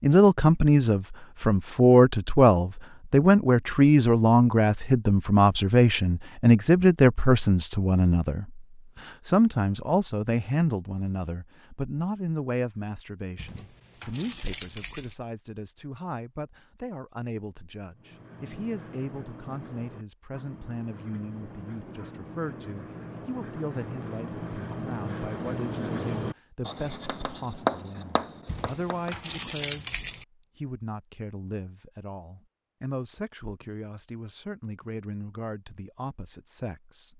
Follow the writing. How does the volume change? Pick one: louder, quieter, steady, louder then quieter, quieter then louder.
louder.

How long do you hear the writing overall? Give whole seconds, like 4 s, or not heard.
11 s.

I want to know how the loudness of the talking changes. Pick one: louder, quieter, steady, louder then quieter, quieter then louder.
quieter.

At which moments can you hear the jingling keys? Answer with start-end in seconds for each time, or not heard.
13.3-15.2, 28.4-30.2.